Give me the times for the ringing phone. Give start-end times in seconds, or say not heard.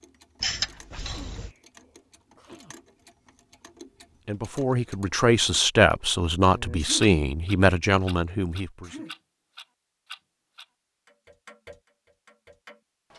0.4-1.5.